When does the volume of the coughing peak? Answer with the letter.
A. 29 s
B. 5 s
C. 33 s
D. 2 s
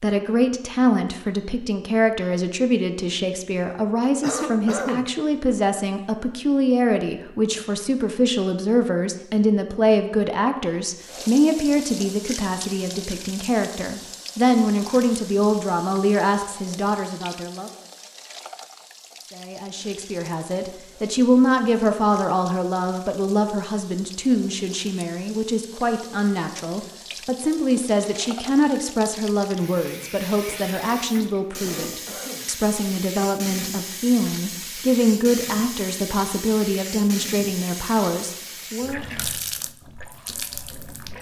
B.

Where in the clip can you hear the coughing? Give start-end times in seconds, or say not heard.
4.2-5.1, 31.5-32.5.